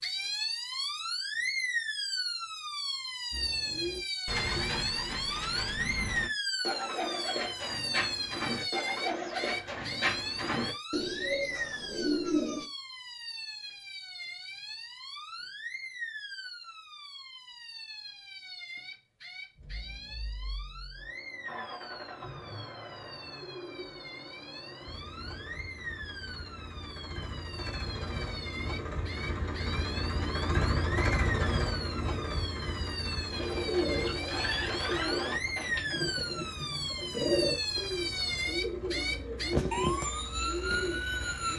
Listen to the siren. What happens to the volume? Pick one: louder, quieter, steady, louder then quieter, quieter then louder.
quieter then louder.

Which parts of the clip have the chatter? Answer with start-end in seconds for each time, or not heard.
not heard.